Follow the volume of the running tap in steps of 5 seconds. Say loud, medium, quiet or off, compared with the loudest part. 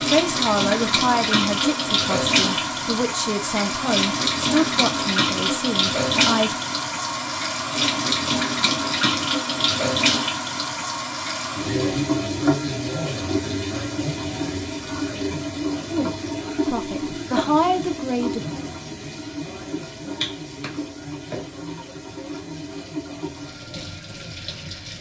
loud, loud, loud, medium, medium.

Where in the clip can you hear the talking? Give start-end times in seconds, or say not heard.
0.0-6.5, 16.6-18.4.